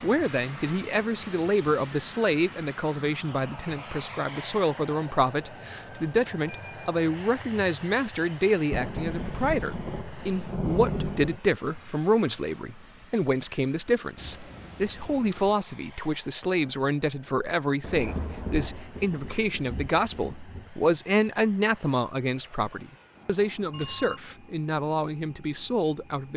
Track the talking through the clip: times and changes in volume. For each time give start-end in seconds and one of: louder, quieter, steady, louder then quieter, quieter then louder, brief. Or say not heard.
0.0-26.3 steady.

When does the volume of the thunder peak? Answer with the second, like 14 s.
11 s.